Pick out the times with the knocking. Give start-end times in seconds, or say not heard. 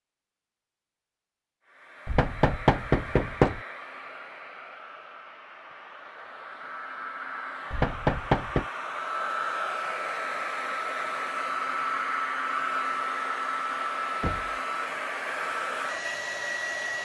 2.0-3.6, 7.7-8.7, 14.2-14.6.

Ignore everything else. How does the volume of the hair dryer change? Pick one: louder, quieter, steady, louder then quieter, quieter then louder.
louder.